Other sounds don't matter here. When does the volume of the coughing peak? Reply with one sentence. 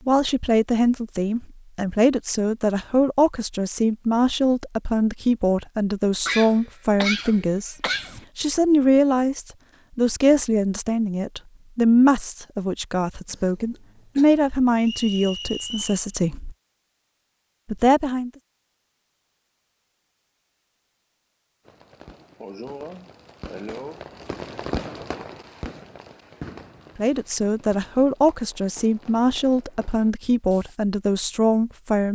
The loudest moment of the coughing is at 7 seconds.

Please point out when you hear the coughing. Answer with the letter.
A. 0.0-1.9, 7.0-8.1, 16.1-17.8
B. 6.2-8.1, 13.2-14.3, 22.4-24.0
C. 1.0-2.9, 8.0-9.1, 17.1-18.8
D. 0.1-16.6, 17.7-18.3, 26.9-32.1
B.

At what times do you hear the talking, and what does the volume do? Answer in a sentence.
The talking can be heard from 0.1 to 16.6 s, at a steady volume; briefly from 17.7 to 18.3 s; and from 26.9 to 32.1 s, at a steady volume.